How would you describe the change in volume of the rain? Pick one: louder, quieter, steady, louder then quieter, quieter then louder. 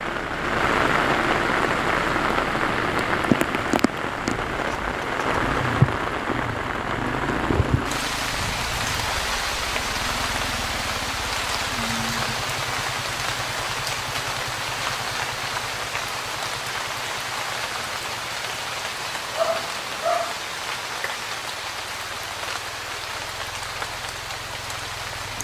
quieter.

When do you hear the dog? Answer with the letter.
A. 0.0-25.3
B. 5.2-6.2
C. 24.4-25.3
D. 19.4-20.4
D.